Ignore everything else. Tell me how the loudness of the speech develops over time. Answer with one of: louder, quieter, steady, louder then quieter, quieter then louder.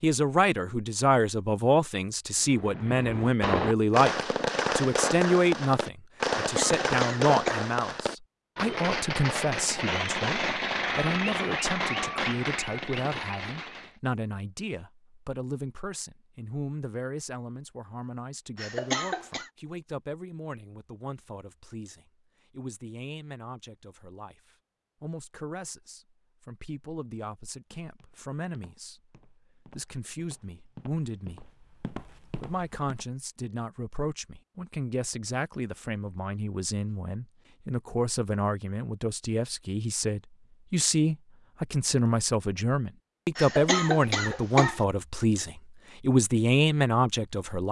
quieter then louder.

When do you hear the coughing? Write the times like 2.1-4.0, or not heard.
6.5-7.7, 18.6-19.5, 43.4-44.8.